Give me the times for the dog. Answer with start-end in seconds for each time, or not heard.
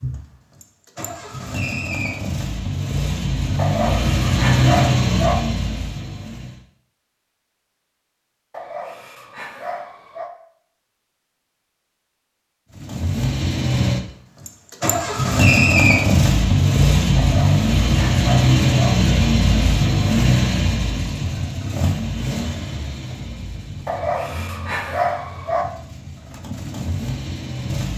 3.5-5.3, 8.5-10.3, 17.1-18.9, 23.9-25.6.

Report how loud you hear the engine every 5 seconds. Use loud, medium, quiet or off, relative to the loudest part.
medium, medium, medium, loud, medium, quiet.